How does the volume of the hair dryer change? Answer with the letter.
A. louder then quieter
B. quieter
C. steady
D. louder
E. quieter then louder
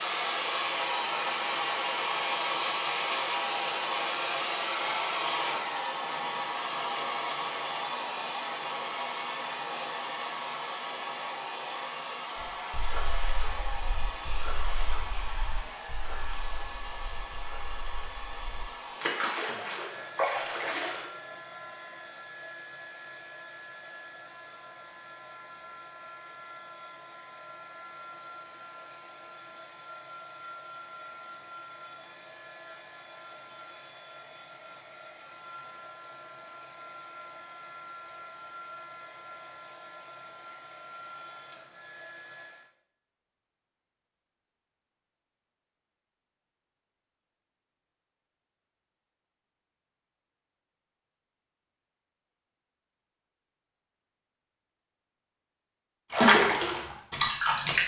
B.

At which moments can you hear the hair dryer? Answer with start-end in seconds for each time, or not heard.
0.0-42.7.